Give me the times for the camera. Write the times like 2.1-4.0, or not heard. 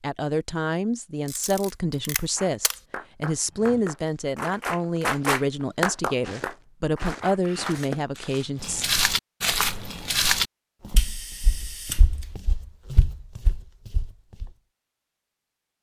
1.2-2.8, 7.4-8.2, 10.9-12.3.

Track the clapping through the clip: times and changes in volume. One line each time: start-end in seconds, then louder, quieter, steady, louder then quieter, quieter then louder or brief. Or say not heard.
2.4-8.3 louder then quieter.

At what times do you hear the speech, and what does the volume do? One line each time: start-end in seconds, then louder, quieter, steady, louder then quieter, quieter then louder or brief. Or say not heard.
0.0-8.8 steady.